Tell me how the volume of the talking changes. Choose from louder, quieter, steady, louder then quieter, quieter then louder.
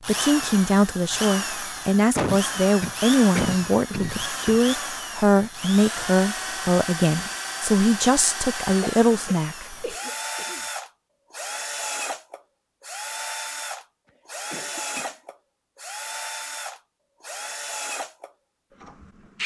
steady.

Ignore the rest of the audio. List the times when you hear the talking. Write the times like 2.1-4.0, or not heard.
0.1-9.9.